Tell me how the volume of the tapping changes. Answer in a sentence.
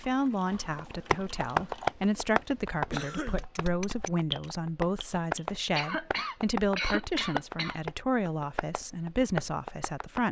The loudness of the tapping goes down.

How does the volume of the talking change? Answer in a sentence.
The loudness of the talking stays about the same.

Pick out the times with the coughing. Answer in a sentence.
You can hear the coughing from 2.9 to 3.5 s and from 5.8 to 7.8 s.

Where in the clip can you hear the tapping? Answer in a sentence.
You can hear the tapping from 0.5 to 10.2 s.